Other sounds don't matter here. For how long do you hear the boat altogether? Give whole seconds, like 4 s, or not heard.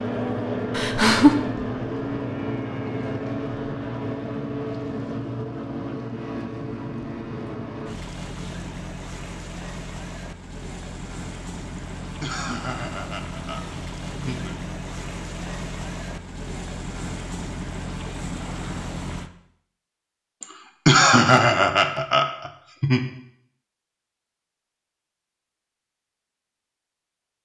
19 s.